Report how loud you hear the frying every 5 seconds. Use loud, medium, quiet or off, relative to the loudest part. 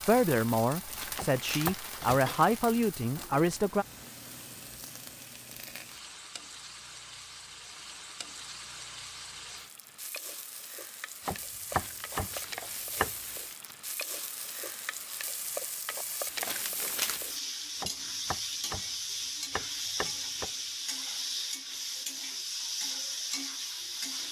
medium, medium, medium, loud, loud.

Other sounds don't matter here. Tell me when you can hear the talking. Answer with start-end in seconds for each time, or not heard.
0.1-3.9.